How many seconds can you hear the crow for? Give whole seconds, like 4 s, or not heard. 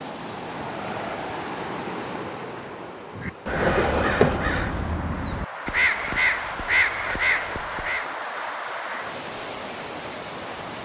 5 s.